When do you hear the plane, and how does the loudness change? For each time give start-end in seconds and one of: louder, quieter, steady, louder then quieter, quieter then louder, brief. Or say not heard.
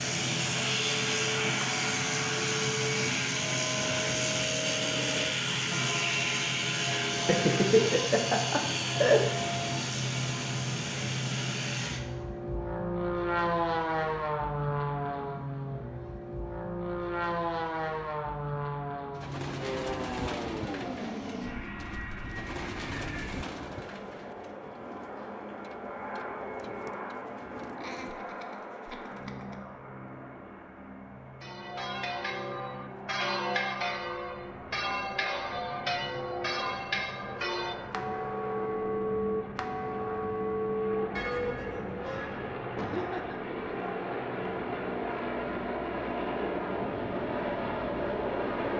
0.0-48.7 quieter then louder.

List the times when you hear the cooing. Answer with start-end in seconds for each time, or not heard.
19.1-28.1.